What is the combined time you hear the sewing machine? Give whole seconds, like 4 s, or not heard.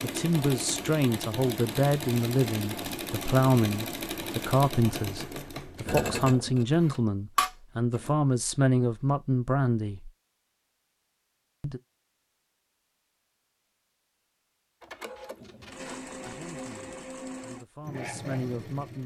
12 s.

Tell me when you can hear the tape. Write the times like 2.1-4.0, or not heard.
15.2-16.9.